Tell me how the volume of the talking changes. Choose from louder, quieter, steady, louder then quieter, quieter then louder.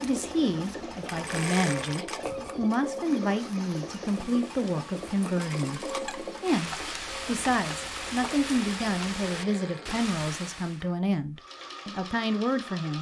steady.